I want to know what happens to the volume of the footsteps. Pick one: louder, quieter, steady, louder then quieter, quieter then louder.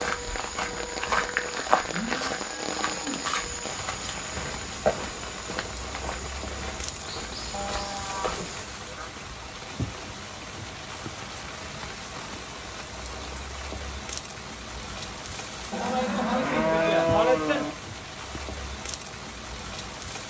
quieter.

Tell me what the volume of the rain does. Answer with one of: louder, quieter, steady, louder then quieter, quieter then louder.
steady.